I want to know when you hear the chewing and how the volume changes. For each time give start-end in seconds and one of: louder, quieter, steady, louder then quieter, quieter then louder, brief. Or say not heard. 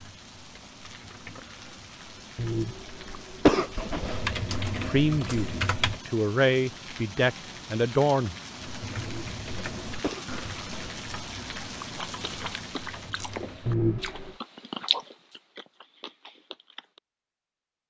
11.9-17.0 louder then quieter.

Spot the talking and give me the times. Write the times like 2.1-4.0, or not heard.
4.8-8.3.